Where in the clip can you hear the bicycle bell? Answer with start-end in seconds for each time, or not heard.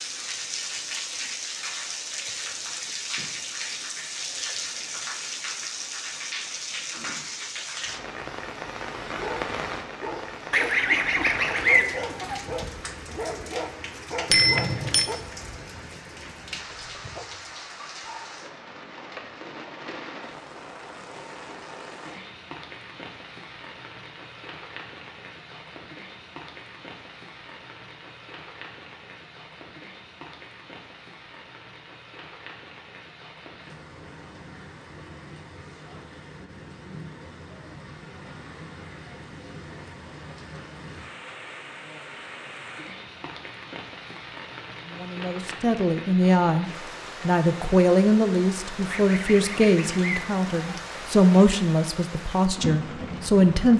14.3-15.1.